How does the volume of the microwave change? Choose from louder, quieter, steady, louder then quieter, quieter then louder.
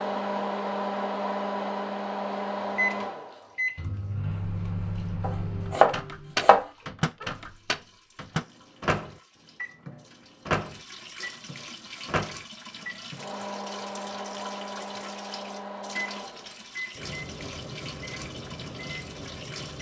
quieter.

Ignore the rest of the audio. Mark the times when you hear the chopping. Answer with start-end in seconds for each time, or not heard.
5.2-6.7.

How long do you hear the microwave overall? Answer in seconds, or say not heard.
20 s.